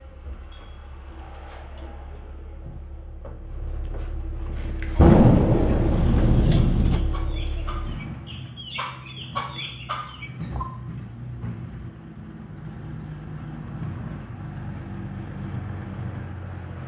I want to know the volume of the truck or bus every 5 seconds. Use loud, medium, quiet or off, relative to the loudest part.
medium, loud, loud, loud.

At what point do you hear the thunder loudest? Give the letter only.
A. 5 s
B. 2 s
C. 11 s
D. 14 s
A.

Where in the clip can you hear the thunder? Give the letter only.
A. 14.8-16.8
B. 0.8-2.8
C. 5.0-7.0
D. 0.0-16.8
C.